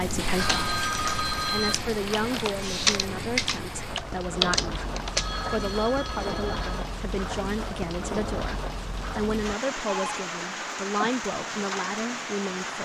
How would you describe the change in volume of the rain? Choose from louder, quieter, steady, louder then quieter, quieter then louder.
steady.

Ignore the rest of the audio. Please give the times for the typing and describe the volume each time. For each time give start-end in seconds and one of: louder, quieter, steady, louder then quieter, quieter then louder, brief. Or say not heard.
0.3-5.3 louder.